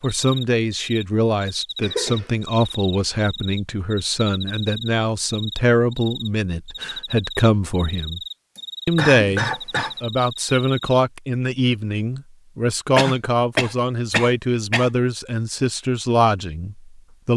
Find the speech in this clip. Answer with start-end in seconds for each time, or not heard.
0.0-8.2, 8.8-17.3.